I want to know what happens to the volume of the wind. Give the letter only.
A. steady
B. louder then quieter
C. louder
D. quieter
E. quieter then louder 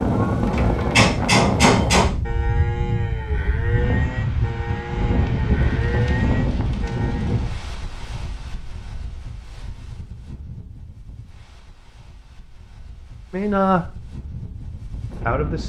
D.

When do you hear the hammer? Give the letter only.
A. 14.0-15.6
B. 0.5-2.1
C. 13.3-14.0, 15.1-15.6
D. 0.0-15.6
B.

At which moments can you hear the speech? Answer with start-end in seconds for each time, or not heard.
13.3-14.0, 15.1-15.6.